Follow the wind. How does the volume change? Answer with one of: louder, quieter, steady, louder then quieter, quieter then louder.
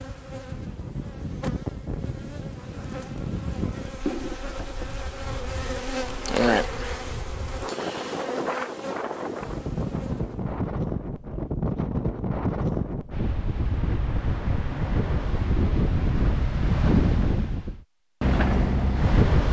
quieter then louder.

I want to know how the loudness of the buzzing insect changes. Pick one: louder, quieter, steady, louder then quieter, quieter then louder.
louder then quieter.